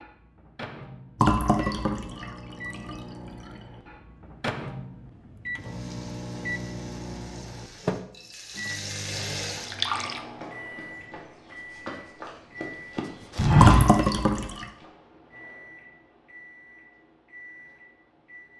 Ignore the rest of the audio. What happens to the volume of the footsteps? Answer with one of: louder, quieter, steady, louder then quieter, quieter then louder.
louder.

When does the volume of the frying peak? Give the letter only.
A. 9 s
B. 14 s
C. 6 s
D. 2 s
A.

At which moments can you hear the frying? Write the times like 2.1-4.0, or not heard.
5.5-9.8.